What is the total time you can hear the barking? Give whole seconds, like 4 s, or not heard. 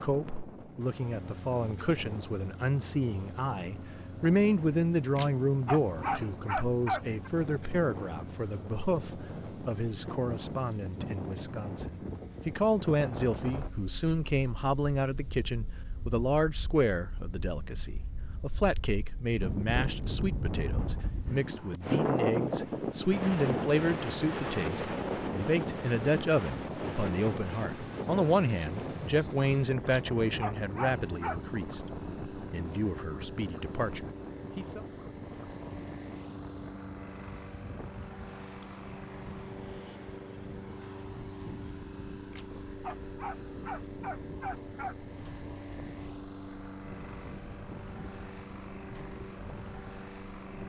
6 s.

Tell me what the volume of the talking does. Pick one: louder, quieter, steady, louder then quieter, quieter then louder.
steady.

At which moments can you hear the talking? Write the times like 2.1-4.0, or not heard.
0.0-34.8.